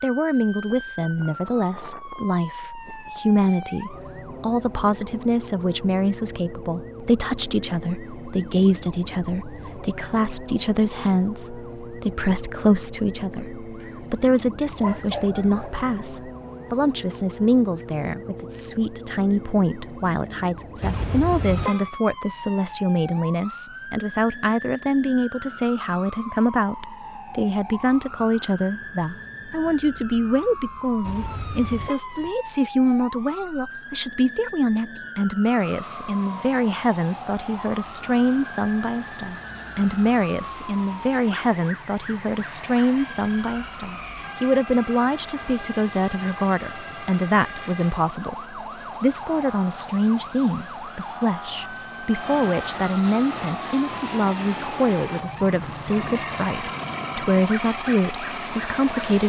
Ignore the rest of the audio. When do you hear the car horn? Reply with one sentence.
You can hear the car horn from 20.8 to 21.9 s and from 31.0 to 32.3 s.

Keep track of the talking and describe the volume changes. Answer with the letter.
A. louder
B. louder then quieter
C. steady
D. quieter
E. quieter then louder
C.